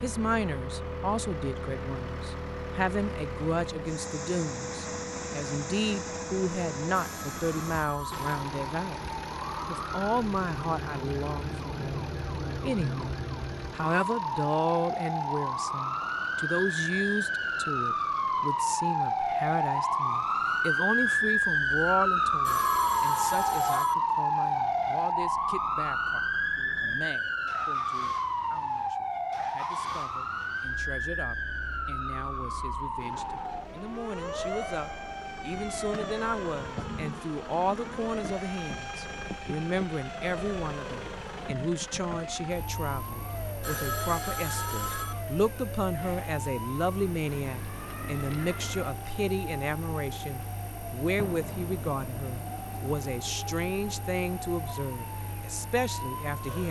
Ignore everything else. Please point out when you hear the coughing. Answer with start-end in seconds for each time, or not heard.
not heard.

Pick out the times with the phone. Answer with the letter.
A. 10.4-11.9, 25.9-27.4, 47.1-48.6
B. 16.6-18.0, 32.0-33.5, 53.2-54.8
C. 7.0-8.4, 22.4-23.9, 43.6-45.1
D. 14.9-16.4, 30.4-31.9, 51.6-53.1
C.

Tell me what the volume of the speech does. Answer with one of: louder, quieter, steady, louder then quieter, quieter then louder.
quieter then louder.